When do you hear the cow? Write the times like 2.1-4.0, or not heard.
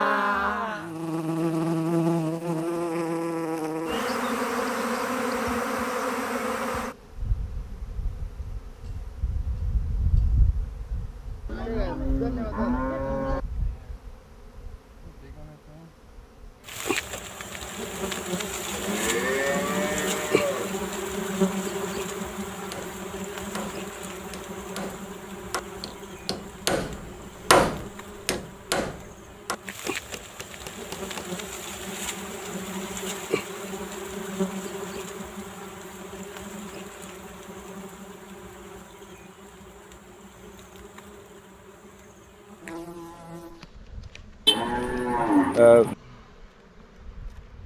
11.4-13.4, 18.7-20.8, 44.5-46.0.